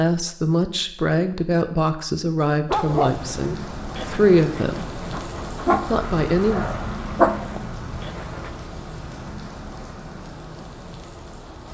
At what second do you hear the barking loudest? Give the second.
7 s.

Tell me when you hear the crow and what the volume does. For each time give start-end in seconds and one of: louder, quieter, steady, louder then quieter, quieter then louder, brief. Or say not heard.
not heard.